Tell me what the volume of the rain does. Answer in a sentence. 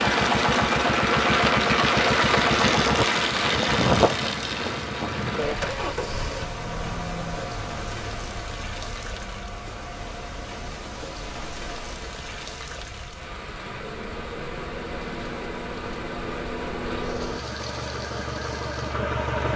The loudness of the rain goes down.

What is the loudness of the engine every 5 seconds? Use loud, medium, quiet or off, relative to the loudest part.
loud, medium, quiet, medium.